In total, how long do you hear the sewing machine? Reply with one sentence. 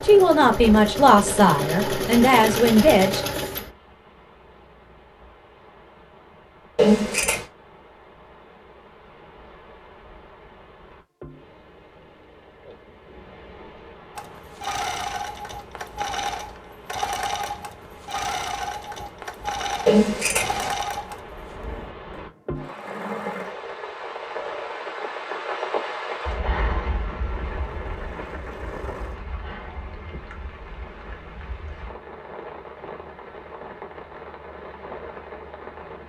You can hear the sewing machine for 19 seconds altogether.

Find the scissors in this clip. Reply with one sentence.
You can hear the scissors from 6.8 to 7.5 s and from 19.9 to 20.8 s.